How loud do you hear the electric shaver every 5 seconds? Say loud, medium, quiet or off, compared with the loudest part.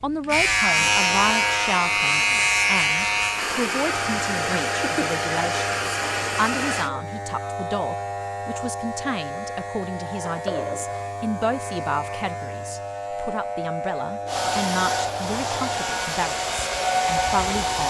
loud, medium, medium, quiet.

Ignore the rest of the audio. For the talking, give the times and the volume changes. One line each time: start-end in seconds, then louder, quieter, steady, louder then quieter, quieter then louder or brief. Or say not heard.
0.0-17.8 steady.